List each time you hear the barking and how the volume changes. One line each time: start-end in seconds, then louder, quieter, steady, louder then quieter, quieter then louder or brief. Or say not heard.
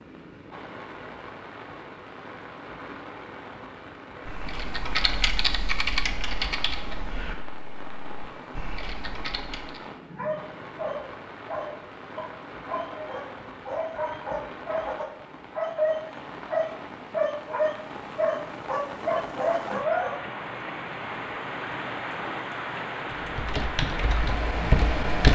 10.1-20.2 louder.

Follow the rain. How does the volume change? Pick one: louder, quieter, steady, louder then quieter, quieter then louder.
louder.